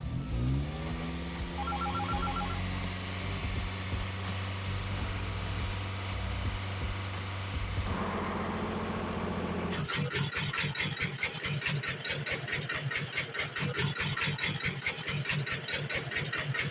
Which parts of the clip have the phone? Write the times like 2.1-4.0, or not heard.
1.6-2.5.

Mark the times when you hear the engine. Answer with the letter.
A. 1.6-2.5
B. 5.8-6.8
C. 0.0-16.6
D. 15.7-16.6
C.